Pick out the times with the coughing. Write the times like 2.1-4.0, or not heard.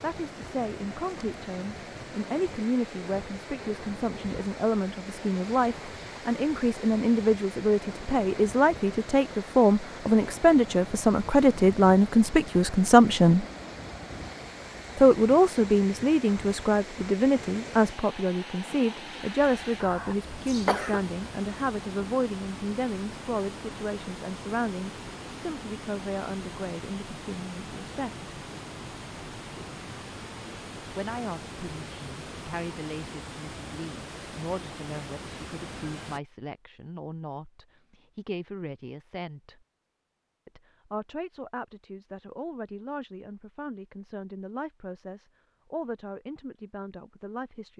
19.8-21.0.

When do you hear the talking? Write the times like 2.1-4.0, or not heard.
0.0-13.4, 14.9-28.3, 30.9-39.6, 40.5-47.7.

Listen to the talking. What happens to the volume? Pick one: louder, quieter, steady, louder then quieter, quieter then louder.
louder then quieter.